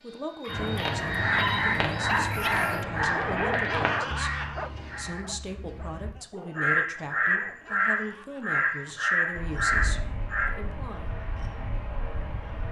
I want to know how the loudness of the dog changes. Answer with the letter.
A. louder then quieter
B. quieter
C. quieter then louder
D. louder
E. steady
B.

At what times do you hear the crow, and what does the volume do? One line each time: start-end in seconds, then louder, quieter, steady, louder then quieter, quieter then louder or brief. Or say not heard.
0.5-10.5 quieter then louder.